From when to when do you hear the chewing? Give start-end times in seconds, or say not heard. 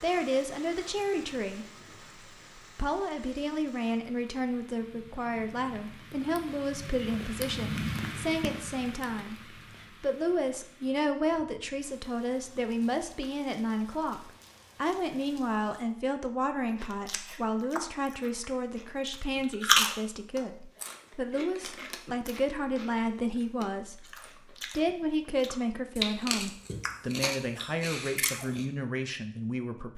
16.8-28.6.